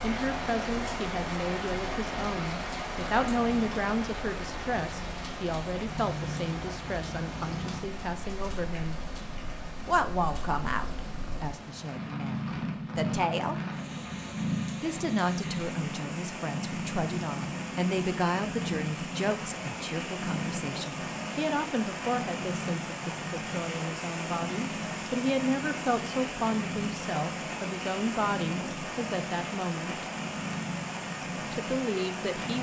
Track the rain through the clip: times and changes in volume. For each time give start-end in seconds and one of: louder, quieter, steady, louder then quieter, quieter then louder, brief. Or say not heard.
0.0-32.5 quieter then louder.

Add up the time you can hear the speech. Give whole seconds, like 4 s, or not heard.
29 s.